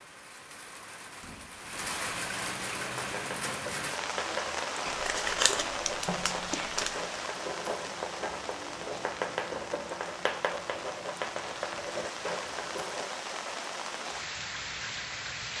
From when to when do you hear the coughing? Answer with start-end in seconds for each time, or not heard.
not heard.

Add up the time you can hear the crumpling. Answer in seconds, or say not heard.
2 s.